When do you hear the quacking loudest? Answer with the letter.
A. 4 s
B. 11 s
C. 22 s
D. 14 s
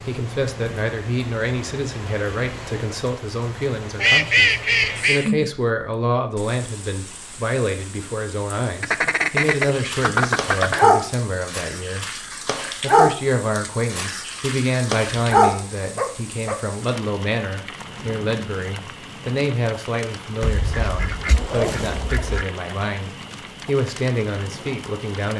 A.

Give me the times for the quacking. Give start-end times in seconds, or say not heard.
4.0-5.3, 8.8-10.8, 20.4-22.4.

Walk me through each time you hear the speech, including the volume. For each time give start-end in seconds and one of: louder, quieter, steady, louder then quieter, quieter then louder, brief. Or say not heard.
0.1-25.3 steady.